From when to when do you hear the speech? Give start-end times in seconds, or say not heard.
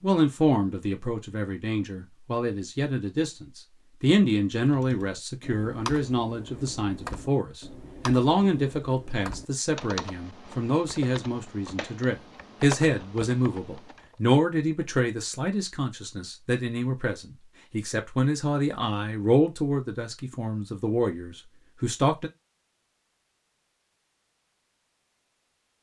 0.0-22.3.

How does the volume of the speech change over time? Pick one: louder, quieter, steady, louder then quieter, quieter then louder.
steady.